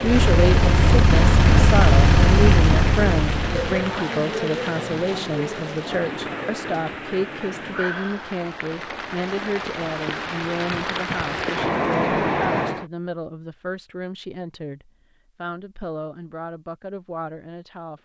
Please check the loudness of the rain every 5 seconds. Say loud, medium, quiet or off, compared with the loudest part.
loud, medium, loud, off.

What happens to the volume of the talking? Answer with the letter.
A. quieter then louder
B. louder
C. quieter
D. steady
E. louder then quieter
C.